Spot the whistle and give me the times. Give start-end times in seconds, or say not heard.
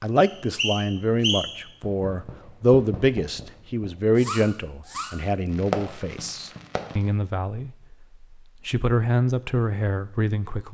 0.2-1.6.